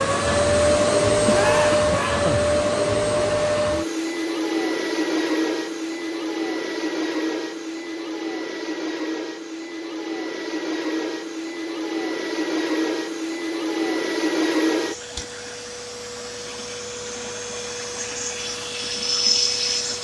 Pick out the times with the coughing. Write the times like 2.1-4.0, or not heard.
1.2-2.5.